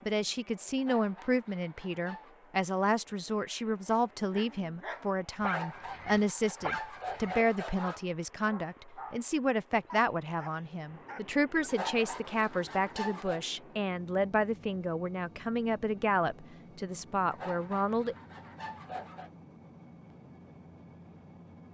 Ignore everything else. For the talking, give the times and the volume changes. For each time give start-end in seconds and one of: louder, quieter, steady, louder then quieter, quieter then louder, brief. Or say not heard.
0.1-18.1 steady.